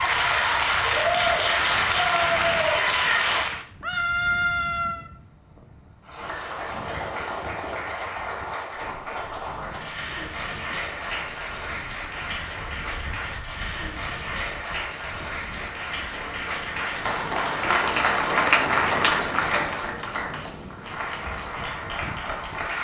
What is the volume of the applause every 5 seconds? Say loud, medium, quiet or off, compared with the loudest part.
loud, medium, medium, loud, medium.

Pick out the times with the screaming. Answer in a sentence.
The screaming can be heard from 3.8 to 5.1 s.